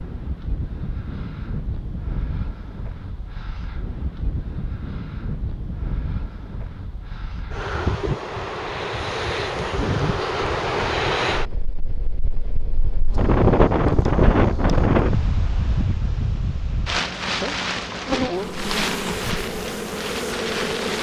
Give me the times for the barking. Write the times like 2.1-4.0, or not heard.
not heard.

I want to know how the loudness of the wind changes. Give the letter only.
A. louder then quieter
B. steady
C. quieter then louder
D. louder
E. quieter
A.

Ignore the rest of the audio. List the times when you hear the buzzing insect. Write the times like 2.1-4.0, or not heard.
13.1-15.1, 17.2-20.9.